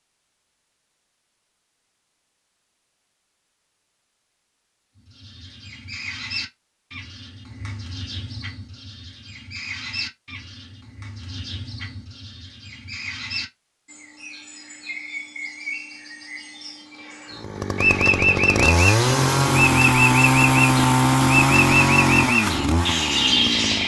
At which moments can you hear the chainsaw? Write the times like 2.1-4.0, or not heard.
17.4-23.8.